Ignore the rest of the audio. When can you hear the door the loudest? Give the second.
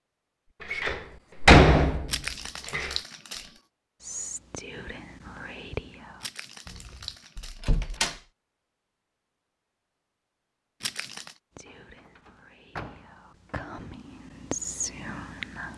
2 s.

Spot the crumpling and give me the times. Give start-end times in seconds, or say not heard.
2.0-3.5, 6.2-8.0, 10.8-11.3.